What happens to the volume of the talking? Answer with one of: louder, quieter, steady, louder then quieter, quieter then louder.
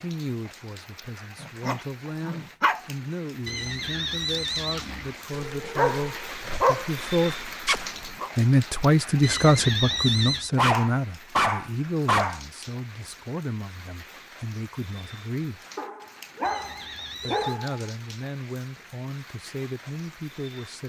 louder then quieter.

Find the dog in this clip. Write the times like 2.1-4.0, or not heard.
1.4-2.8, 5.3-8.3, 10.6-12.4, 15.8-17.8.